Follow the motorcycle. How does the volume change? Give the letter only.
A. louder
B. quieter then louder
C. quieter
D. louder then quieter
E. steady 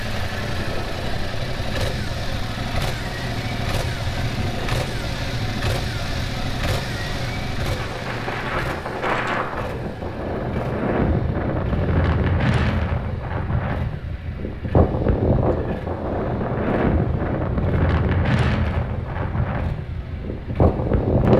C.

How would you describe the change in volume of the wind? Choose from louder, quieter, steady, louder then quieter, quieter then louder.
louder.